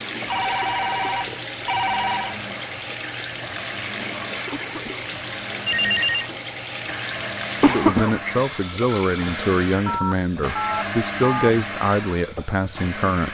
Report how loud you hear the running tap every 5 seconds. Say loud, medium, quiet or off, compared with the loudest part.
loud, loud, quiet.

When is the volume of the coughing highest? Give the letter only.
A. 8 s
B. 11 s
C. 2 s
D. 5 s
A.